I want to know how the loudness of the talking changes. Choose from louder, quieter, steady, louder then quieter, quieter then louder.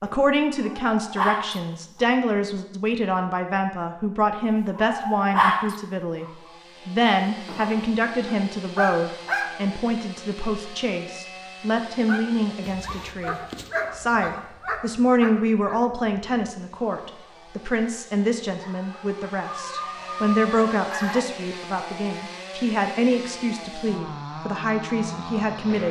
steady.